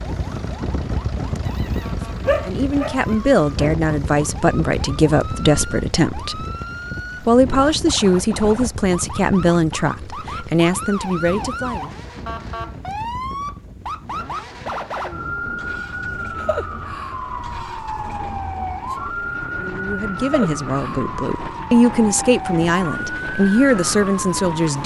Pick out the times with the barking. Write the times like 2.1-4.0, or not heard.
1.4-3.7.